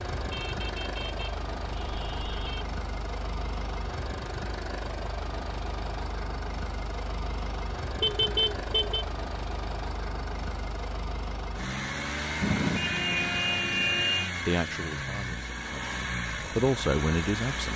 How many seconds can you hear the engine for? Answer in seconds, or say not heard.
18 s.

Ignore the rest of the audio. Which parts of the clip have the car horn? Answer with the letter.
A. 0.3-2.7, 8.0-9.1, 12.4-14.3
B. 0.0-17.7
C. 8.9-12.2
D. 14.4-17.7
A.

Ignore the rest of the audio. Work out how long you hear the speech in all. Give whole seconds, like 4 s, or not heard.
3 s.